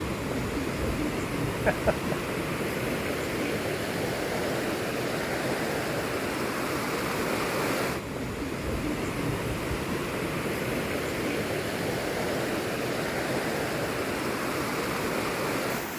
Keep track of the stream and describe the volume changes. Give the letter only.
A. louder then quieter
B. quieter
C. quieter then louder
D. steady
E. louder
D.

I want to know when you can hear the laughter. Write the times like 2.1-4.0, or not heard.
1.6-2.2.